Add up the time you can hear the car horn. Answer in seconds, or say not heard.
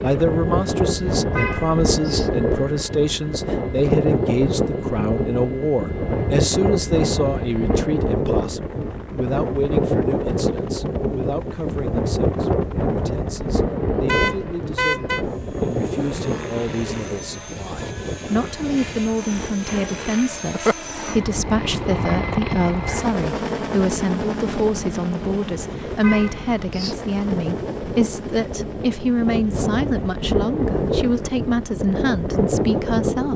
3 s.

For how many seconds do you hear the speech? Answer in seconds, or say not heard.
33 s.